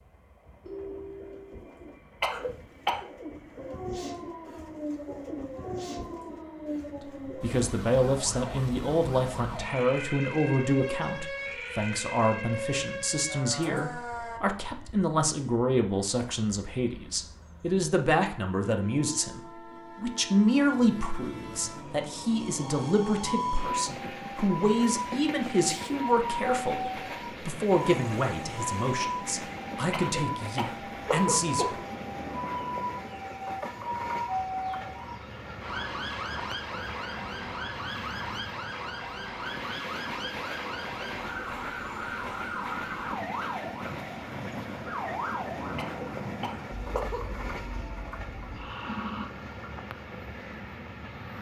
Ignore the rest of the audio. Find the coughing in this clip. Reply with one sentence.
You can hear the coughing from 2.2 to 3.0 s, from 29.9 to 31.8 s and from 45.8 to 47.2 s.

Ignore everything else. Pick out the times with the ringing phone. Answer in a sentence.
You can hear the ringing phone from 0.7 to 1.6 s.